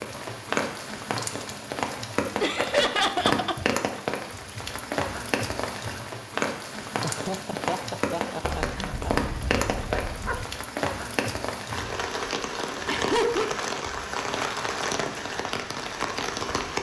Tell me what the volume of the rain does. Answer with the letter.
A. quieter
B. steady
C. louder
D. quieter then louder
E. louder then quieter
B.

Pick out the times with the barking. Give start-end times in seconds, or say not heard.
8.5-10.4.